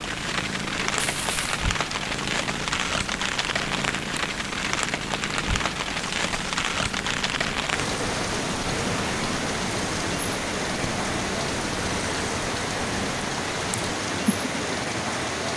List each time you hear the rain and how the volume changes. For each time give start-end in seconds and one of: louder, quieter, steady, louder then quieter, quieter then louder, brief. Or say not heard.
0.0-15.5 steady.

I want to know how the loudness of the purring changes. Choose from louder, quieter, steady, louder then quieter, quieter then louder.
steady.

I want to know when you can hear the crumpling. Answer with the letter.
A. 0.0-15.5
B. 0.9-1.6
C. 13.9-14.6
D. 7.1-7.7
B.